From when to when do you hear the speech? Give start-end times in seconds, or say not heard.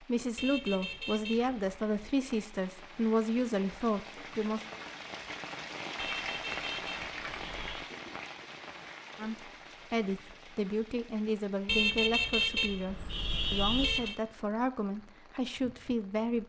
0.0-4.7, 9.2-16.4.